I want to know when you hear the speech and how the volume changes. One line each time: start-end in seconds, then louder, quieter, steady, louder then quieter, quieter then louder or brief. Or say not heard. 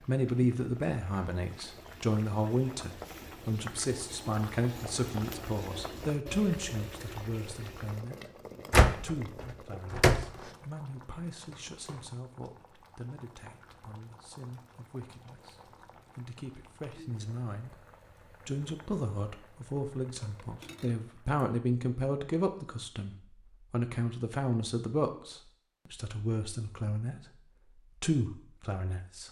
0.0-29.2 quieter then louder.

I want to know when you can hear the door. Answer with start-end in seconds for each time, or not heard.
8.7-10.2.